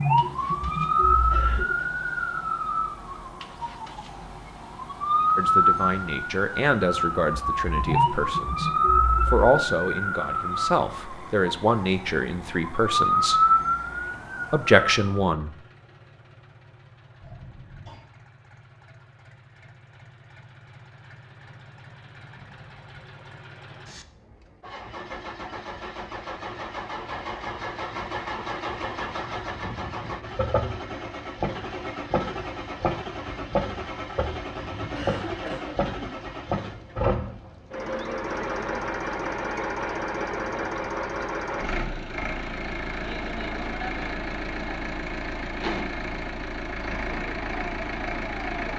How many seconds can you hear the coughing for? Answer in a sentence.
You can hear the coughing for 3 seconds altogether.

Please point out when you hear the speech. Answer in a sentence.
You can hear the speech from 5.3 to 13.4 s and from 14.5 to 15.5 s.